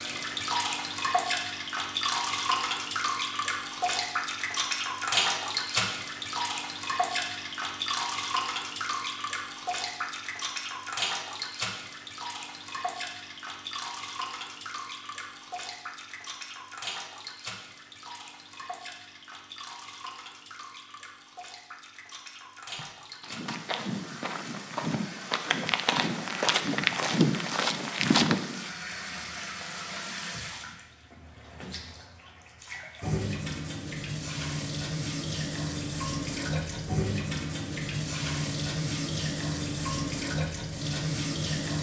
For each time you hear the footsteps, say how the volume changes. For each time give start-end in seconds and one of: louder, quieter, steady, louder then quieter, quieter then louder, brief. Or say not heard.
22.8-28.7 louder.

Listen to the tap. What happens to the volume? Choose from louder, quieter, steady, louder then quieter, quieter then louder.
quieter then louder.